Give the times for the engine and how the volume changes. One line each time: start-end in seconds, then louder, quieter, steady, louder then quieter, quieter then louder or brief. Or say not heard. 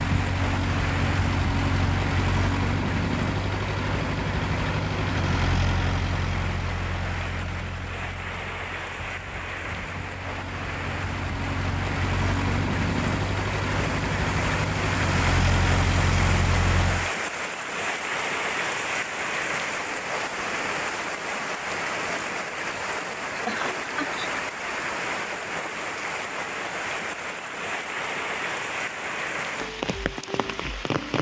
0.0-17.1 quieter then louder.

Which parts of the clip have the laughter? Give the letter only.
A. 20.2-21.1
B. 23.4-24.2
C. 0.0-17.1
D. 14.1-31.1
B.